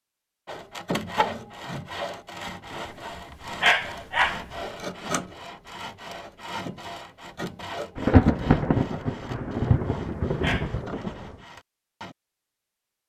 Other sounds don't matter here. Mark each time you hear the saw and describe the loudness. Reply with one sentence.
The saw can be heard from 0.5 to 12.2 s, getting quieter.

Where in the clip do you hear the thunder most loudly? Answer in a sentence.
The loudest moment of the thunder is at 8 seconds.